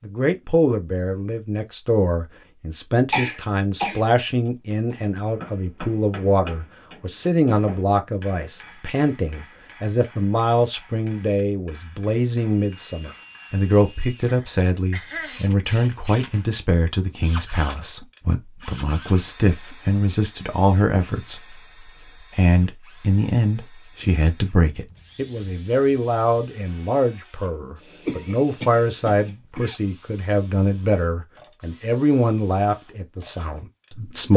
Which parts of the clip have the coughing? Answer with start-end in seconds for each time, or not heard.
3.1-4.0, 14.2-15.4, 28.1-29.8.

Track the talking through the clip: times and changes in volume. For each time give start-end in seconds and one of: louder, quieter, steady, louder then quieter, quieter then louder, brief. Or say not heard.
0.0-34.3 steady.